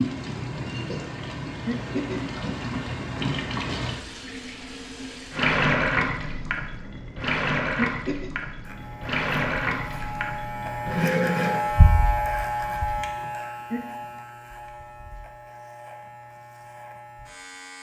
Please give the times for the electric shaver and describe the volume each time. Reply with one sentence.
You can hear the electric shaver from 8.6 to 17.7 s, getting louder then quieter.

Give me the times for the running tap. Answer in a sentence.
You can hear the running tap from 0.0 to 11.6 s.